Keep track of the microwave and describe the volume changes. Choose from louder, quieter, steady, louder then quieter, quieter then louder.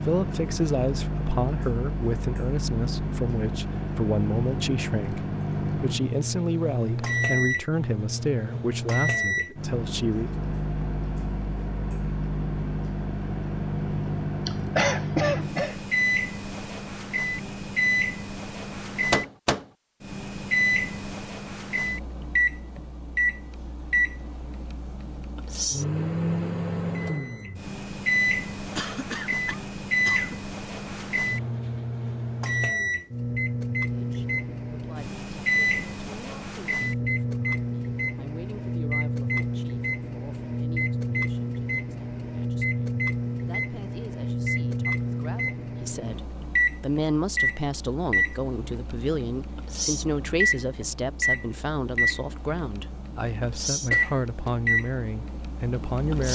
steady.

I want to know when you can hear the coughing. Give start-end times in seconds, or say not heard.
14.4-15.8, 28.8-30.4, 53.9-54.5.